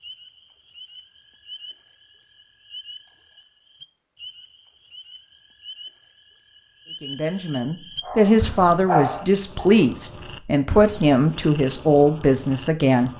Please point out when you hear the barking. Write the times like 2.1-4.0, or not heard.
8.0-9.8.